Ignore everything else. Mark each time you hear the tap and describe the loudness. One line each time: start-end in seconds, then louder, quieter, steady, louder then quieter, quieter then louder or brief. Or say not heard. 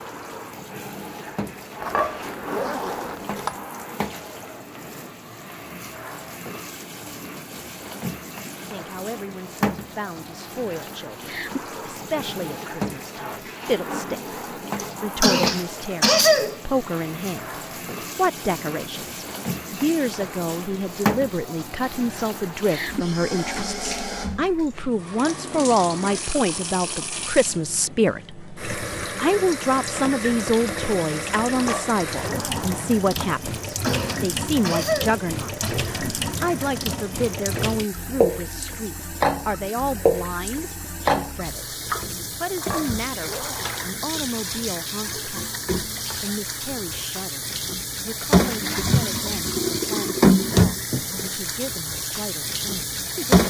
0.0-53.4 louder.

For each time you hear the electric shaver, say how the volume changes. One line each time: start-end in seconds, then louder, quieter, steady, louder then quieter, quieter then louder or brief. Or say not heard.
not heard.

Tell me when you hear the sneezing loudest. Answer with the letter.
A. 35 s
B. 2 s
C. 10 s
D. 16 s
D.